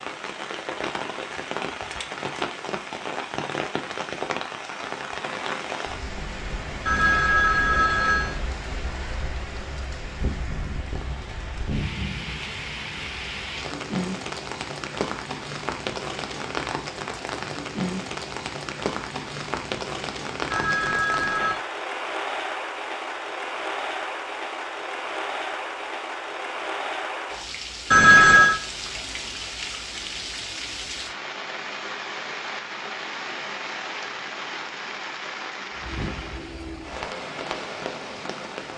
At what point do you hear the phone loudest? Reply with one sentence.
The loudest moment of the phone is at 28 seconds.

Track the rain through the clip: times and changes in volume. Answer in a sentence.
You can hear the rain from 0.0 to 38.7 s, at a steady volume.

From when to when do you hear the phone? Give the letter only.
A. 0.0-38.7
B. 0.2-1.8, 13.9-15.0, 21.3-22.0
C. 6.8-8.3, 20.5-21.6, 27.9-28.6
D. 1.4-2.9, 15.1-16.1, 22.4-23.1
C.